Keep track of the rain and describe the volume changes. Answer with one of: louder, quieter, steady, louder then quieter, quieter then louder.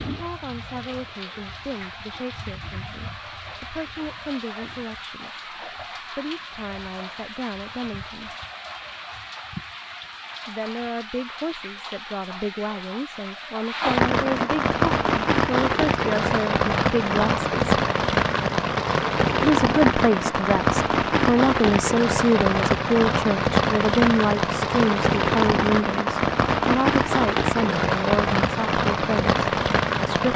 louder.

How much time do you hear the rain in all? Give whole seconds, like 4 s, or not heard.
30 s.